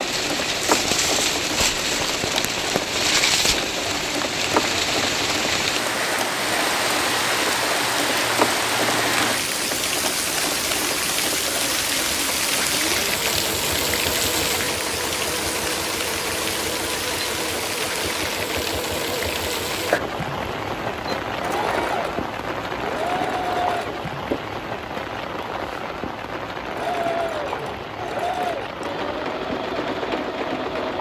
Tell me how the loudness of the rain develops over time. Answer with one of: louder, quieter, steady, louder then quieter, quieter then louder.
quieter.